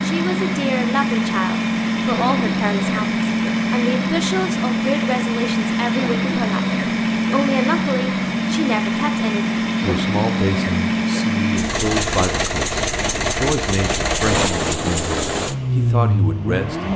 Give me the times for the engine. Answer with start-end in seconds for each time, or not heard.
0.0-16.9.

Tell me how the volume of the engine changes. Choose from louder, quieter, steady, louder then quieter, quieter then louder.
steady.